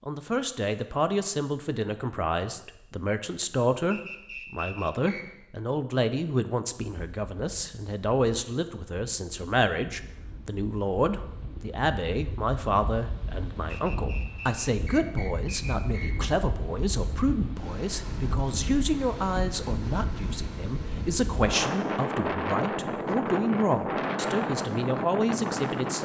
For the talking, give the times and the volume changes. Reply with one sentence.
The talking can be heard from 0.1 to 26.0 s, at a steady volume.